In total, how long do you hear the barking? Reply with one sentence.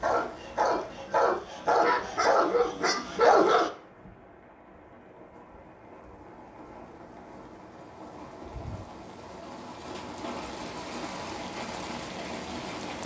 You can hear the barking for 4 seconds altogether.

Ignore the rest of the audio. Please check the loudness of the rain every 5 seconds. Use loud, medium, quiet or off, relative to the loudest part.
medium, medium, loud.